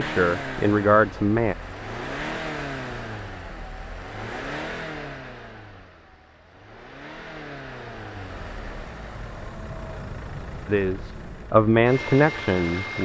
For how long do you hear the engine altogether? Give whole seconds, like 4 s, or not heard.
13 s.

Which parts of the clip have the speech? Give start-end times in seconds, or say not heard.
0.0-1.6, 10.7-13.0.